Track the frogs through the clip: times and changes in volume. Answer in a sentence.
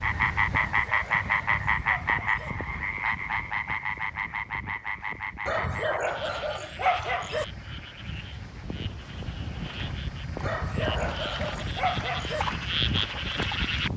You can hear the frogs from 0.0 to 13.9 s, getting quieter then louder.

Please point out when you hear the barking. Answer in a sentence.
The barking can be heard from 0.5 to 2.5 s, from 5.5 to 7.5 s and from 10.4 to 12.4 s.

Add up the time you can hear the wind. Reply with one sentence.
You can hear the wind for 14 seconds altogether.